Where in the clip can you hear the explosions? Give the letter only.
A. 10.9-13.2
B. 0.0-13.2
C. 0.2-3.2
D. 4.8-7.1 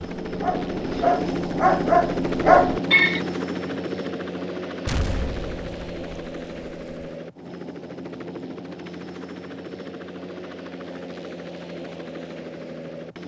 D.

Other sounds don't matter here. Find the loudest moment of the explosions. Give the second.
5 s.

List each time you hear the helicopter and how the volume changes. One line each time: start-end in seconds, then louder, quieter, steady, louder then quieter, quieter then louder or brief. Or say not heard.
0.0-13.2 quieter.